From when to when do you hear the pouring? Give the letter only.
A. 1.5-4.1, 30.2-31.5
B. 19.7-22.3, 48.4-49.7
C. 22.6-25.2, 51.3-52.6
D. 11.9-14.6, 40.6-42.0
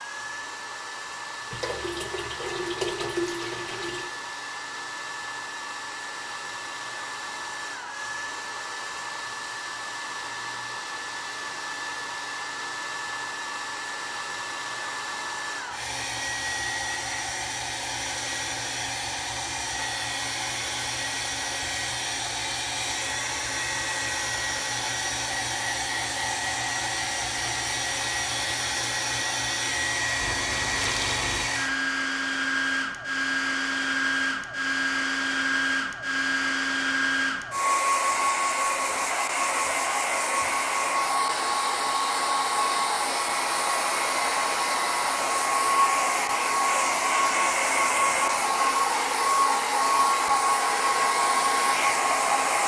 A.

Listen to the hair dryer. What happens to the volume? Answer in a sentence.
The volume of the hair dryer goes up.